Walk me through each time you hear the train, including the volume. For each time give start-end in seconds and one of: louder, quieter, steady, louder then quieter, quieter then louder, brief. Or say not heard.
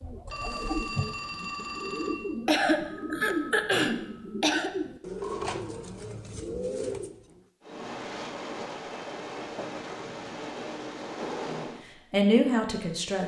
7.6-11.8 steady.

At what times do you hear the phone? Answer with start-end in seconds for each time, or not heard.
0.2-2.2.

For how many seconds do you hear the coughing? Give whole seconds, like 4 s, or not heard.
2 s.